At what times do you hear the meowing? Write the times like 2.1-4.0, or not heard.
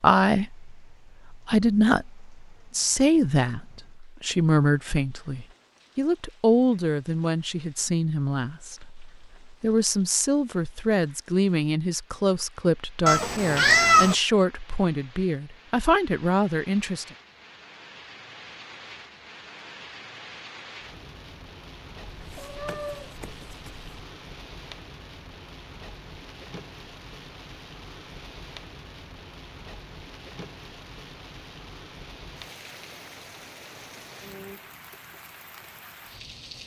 13.1-14.2, 22.1-23.9.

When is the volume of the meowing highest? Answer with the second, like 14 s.
14 s.